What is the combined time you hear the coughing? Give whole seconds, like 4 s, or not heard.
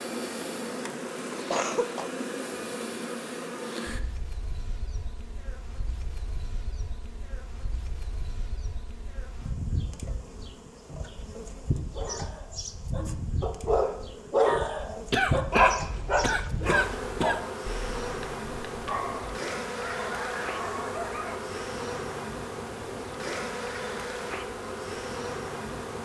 3 s.